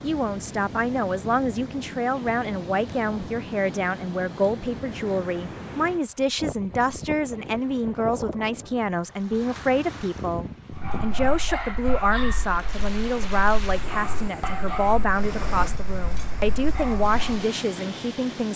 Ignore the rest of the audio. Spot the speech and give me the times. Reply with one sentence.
You can hear the speech from 0.0 to 18.5 s.